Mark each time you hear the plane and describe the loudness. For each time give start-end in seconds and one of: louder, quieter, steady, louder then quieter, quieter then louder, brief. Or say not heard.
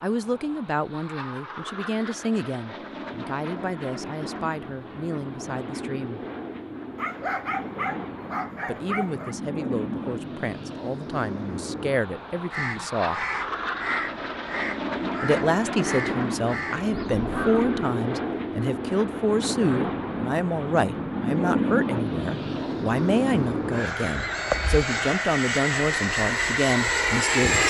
0.0-27.6 louder.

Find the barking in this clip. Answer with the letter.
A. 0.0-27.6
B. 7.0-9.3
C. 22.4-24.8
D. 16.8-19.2
B.